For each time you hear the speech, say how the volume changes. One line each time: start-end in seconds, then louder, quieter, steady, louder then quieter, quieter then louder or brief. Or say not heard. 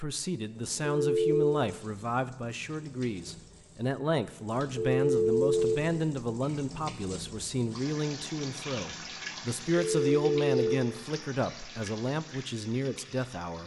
0.0-13.6 steady.